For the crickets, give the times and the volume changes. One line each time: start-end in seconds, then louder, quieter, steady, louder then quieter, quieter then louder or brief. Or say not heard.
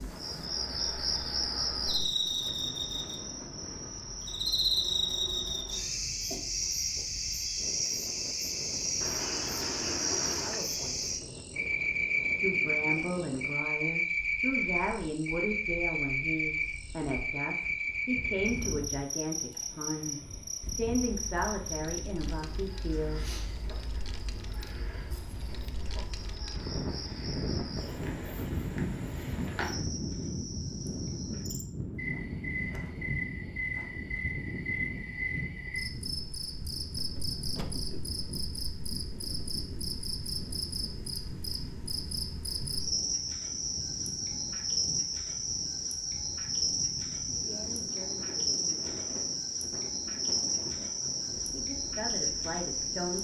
0.0-53.1 quieter then louder.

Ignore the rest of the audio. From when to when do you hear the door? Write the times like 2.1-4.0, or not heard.
9.0-10.6, 37.0-38.0.